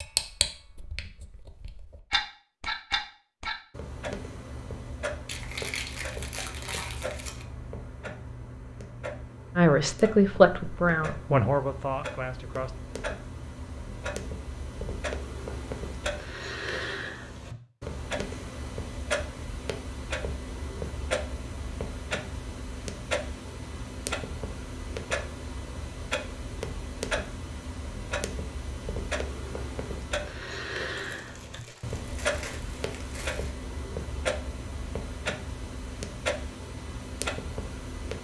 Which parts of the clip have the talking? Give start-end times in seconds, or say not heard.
9.6-12.8.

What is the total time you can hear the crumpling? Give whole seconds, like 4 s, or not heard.
5 s.